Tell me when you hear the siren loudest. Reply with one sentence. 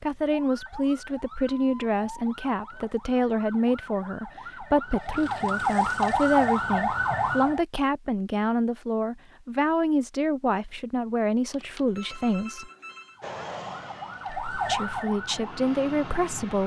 The volume of the siren peaks at 6 seconds.